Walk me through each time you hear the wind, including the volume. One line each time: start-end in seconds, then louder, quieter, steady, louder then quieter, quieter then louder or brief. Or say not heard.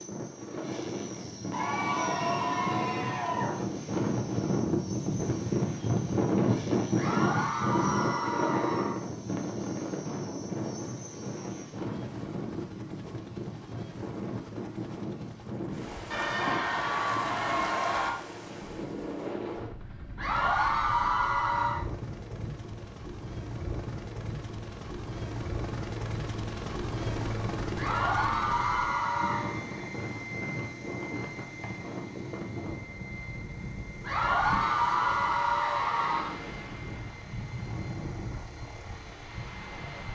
0.0-40.1 quieter.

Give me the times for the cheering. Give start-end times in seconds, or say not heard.
1.5-3.5, 7.0-9.0, 16.1-18.1, 20.1-21.9, 27.8-29.6, 34.0-36.4.